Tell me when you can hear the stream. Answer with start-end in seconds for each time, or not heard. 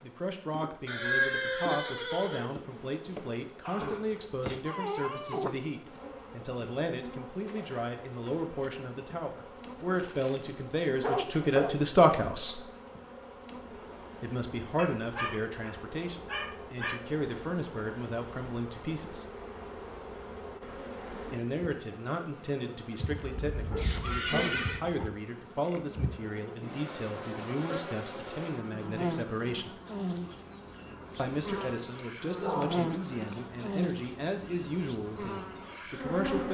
not heard.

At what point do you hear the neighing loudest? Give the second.
1 s.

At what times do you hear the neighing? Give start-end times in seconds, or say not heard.
0.8-2.5, 23.8-24.8.